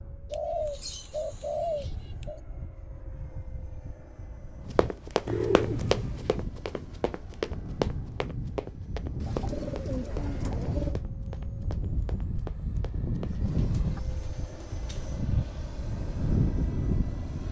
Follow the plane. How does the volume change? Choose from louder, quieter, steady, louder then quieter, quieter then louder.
louder.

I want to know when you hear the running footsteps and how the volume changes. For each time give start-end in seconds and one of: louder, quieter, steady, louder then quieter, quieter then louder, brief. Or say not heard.
4.8-13.3 quieter.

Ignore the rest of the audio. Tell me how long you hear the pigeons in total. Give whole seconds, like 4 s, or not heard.
7 s.